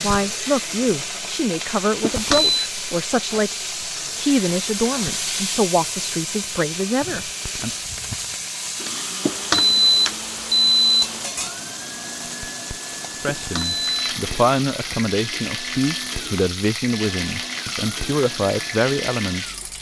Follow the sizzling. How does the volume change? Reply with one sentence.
The loudness of the sizzling stays about the same.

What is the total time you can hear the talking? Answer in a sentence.
You can hear the talking for 14 seconds altogether.